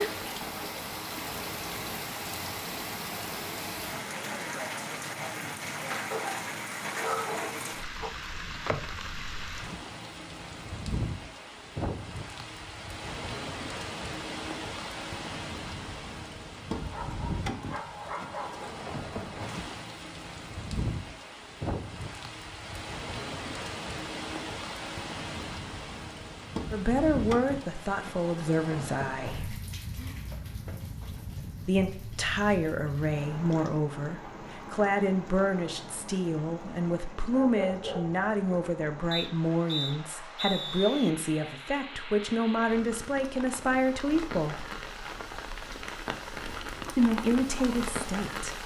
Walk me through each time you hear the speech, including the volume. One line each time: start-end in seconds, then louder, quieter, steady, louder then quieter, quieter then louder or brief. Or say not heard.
26.7-29.6 brief
31.6-44.6 steady
47.0-48.6 brief.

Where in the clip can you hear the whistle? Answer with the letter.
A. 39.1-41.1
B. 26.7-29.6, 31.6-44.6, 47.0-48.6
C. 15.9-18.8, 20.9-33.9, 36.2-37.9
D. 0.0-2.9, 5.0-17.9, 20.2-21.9
A.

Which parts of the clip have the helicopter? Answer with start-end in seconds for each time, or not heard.
not heard.